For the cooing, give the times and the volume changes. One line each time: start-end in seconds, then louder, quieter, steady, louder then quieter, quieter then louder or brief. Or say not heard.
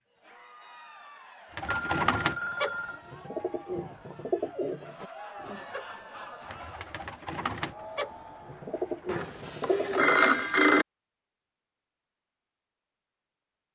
1.5-10.2 quieter then louder.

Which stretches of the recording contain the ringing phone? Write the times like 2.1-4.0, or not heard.
1.6-3.0, 9.1-10.8.